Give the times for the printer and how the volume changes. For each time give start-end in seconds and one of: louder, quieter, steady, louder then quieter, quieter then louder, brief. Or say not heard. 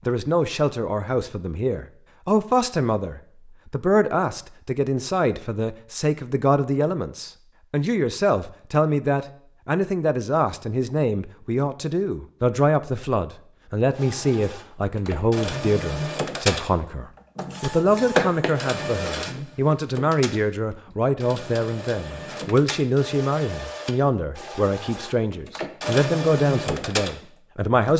13.9-27.9 quieter then louder.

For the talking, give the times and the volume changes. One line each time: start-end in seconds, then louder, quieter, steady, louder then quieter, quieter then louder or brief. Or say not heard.
0.1-27.9 steady.